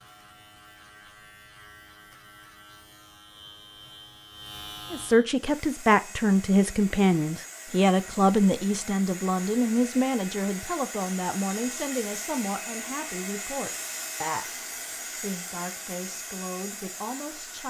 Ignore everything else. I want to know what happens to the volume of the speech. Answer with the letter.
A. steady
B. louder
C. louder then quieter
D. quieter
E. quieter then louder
D.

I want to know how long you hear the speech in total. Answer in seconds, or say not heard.
13 s.